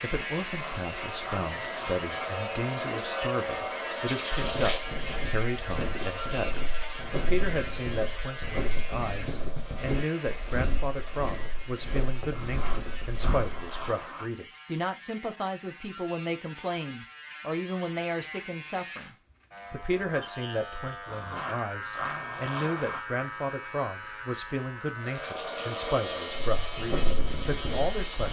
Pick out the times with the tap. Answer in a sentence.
The tap can be heard from 0.0 to 11.7 s and from 24.9 to 28.2 s.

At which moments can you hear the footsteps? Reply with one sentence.
You can hear the footsteps from 4.3 to 13.9 s and from 26.3 to 28.2 s.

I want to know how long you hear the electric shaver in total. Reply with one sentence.
You can hear the electric shaver for 28 seconds altogether.